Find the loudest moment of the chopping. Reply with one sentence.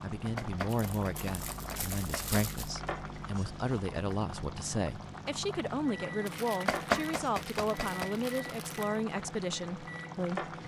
The loudest moment of the chopping is at 7 seconds.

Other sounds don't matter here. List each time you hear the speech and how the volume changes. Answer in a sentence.
You can hear the speech from 0.0 to 10.5 s, at a steady volume.